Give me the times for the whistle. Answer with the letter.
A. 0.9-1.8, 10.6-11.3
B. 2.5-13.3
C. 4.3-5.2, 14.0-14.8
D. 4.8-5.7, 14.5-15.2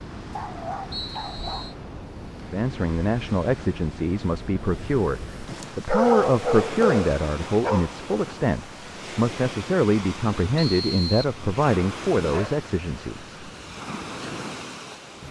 A.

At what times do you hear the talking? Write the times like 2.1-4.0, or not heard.
2.5-13.3.